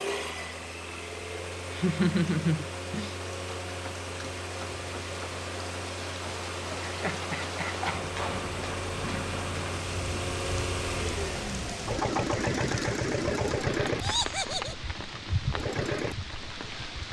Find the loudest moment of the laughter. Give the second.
2 s.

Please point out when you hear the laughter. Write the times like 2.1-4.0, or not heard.
1.7-3.1, 6.8-8.0, 14.0-14.8.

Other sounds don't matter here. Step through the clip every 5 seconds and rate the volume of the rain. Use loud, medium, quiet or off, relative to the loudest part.
medium, loud, loud, loud.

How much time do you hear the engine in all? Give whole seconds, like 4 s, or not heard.
17 s.